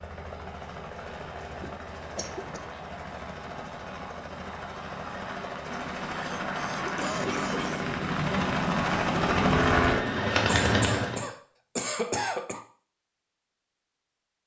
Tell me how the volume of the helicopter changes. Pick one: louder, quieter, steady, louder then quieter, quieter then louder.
louder.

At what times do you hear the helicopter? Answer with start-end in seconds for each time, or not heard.
0.0-11.2.